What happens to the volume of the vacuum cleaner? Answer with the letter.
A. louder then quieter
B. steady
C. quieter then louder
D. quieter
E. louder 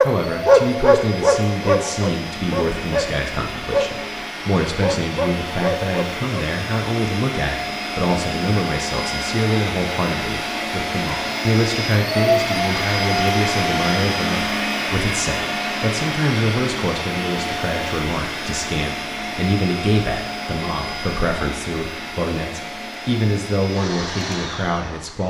A.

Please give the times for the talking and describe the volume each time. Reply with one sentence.
You can hear the talking from 0.0 to 25.2 s, at a steady volume.